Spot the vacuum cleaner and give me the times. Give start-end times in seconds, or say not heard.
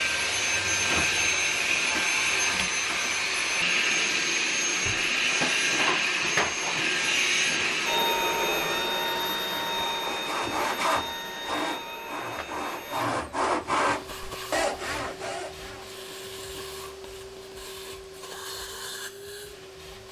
0.0-20.0.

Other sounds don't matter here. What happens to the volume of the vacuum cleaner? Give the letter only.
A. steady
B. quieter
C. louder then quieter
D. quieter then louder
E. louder
B.